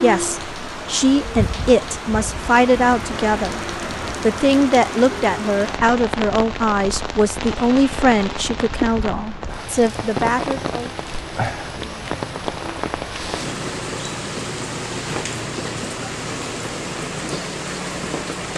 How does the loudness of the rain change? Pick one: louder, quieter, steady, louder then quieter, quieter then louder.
steady.